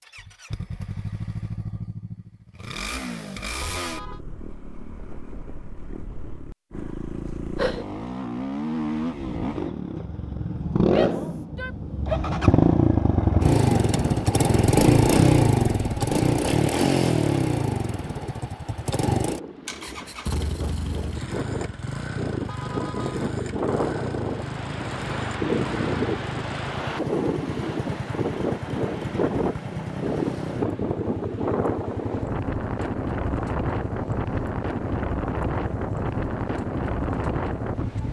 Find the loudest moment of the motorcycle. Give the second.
15 s.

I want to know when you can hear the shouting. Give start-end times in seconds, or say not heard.
10.8-11.8.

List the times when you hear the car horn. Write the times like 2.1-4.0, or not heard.
3.6-4.2, 22.4-23.2.